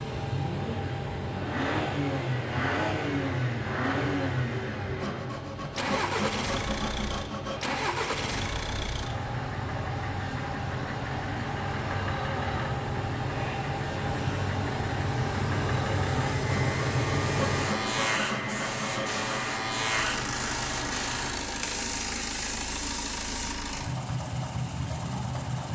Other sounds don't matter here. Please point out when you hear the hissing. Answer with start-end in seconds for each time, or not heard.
0.0-23.6.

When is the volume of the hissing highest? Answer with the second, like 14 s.
17 s.